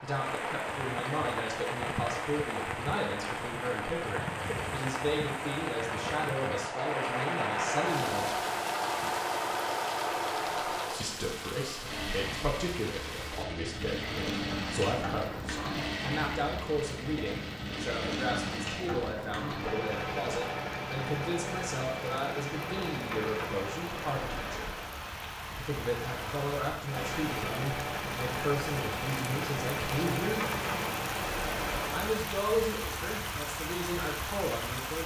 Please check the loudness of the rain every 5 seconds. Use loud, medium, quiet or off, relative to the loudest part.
loud, loud, medium, medium, medium, loud, loud.